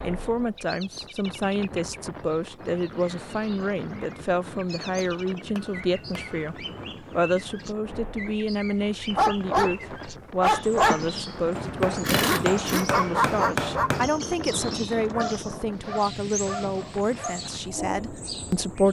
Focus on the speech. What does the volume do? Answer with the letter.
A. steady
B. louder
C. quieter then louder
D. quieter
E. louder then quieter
A.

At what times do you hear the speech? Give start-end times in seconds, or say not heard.
0.0-18.8.